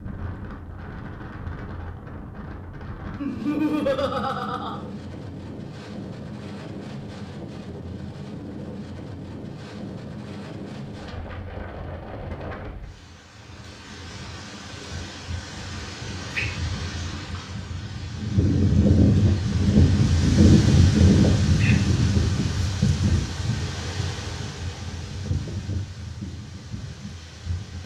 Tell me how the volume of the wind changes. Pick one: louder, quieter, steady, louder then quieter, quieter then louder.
louder then quieter.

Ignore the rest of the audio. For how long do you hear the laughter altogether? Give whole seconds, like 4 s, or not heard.
2 s.